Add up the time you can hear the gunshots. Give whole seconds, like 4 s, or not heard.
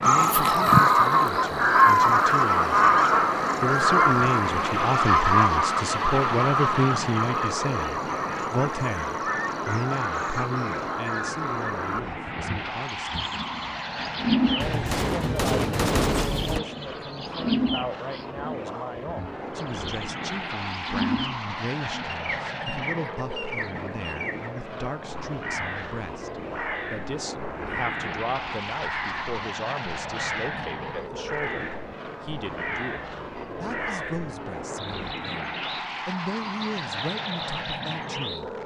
2 s.